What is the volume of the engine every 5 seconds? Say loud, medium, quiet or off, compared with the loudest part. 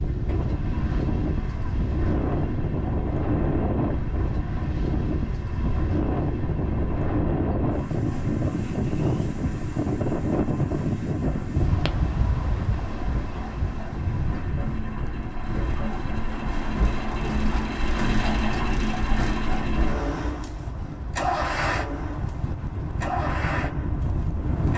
medium, medium, medium, loud, loud.